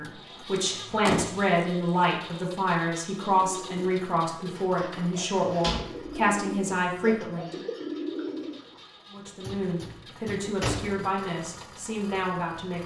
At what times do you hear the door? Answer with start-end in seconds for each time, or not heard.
0.6-2.0, 5.6-6.2, 9.4-11.1.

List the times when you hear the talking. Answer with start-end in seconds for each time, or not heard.
0.0-7.6, 9.1-12.8.